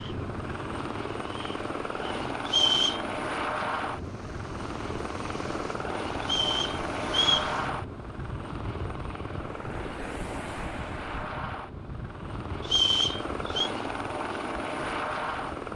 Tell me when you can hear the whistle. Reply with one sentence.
The whistle can be heard from 2.5 to 3.0 s, from 6.2 to 7.5 s and from 12.6 to 13.7 s.